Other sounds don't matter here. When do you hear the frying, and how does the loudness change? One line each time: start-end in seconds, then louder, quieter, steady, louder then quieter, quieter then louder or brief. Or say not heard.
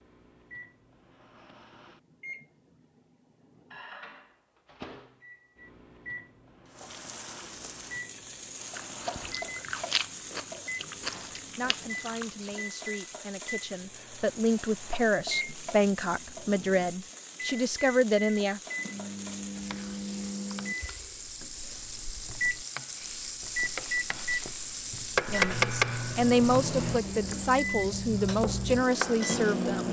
6.7-29.8 louder.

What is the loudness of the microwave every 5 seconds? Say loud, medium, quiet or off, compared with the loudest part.
quiet, quiet, medium, medium, loud, loud.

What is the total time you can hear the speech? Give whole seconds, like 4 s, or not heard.
12 s.